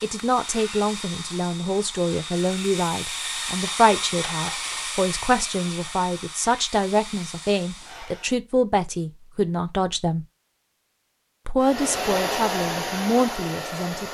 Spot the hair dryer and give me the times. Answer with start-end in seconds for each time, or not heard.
0.0-8.3, 11.6-14.1.